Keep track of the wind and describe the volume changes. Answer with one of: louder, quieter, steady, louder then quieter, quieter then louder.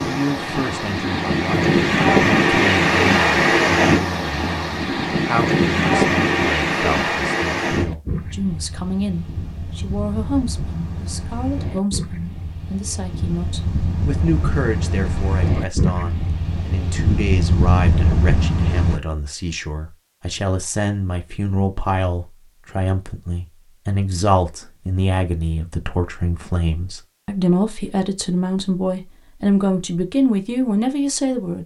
quieter then louder.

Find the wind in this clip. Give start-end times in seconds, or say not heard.
0.0-19.0.